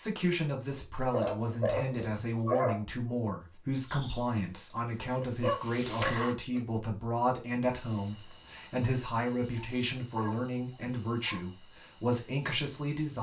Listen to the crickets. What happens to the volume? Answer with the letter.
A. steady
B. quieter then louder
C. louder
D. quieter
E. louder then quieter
D.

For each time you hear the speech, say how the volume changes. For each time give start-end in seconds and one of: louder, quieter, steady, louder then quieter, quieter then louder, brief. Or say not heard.
0.0-13.1 steady.